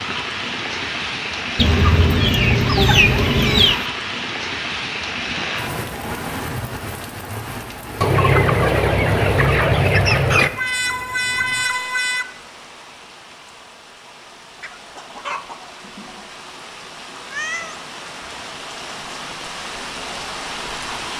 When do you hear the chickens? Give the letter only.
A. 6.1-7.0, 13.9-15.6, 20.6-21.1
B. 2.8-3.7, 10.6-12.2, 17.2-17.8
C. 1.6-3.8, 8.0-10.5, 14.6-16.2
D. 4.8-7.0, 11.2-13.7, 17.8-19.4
C.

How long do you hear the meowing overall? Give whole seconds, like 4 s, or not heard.
3 s.